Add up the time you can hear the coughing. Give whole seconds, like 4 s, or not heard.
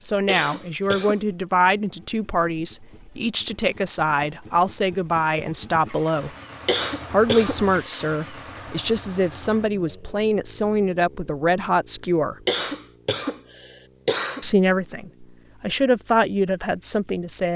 4 s.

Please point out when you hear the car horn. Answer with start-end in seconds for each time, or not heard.
not heard.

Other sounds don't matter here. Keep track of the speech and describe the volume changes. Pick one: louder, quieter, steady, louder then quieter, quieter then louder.
steady.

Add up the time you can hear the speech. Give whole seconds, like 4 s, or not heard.
15 s.